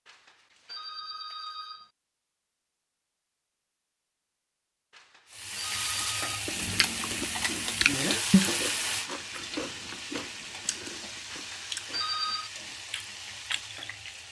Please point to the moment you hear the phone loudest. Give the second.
12 s.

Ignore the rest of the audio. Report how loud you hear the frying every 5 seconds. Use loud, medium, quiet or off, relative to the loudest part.
off, loud, medium.